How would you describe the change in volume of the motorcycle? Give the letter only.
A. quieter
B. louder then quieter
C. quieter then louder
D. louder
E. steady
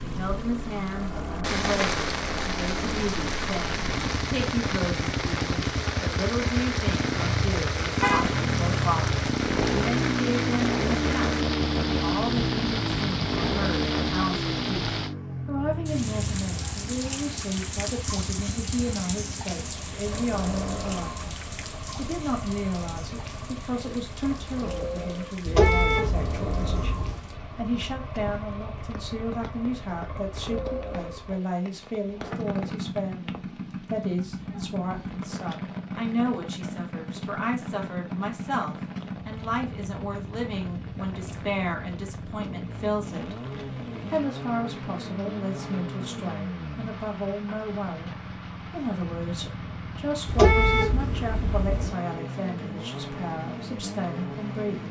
A.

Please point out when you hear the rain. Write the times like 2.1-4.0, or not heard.
0.0-54.8.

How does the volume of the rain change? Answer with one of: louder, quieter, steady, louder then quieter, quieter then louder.
quieter.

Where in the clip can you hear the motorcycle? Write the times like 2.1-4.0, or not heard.
0.0-54.8.